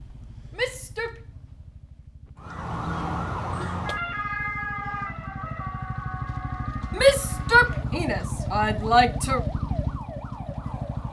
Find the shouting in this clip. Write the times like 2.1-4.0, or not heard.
0.6-1.1, 7.0-9.4.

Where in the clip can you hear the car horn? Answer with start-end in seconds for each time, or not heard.
not heard.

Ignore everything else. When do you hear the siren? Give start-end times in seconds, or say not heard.
2.4-11.0.